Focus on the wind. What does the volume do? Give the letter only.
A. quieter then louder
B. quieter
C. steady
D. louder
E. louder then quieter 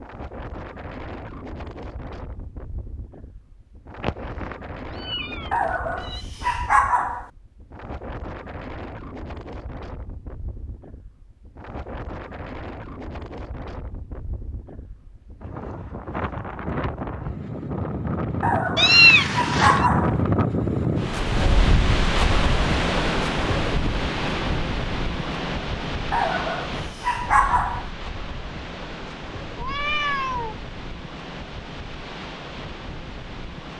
E.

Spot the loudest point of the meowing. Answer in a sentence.
The loudest moment of the meowing is at 19 seconds.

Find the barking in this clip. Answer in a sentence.
The barking can be heard from 5.5 to 7.2 s, from 18.4 to 20.2 s and from 26.1 to 27.9 s.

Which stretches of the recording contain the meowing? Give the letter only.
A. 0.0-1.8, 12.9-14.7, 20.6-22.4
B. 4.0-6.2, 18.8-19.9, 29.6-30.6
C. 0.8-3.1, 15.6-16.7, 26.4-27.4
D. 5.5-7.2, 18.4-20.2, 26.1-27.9
B.